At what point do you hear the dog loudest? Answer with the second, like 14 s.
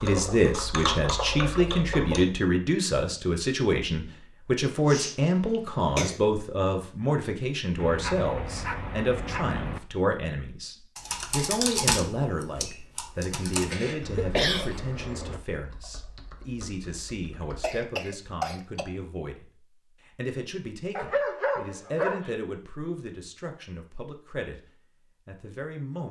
21 s.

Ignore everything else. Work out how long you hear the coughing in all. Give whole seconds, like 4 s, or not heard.
4 s.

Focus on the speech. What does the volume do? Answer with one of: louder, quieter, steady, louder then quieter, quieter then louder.
quieter.